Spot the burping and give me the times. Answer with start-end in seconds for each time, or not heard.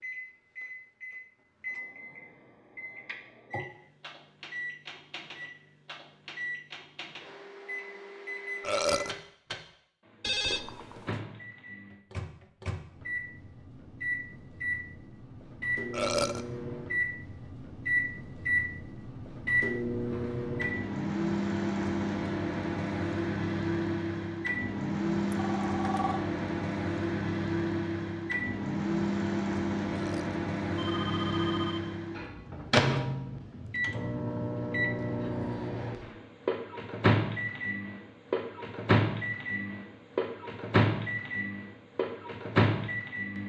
8.6-9.2, 15.9-16.4, 29.9-30.4.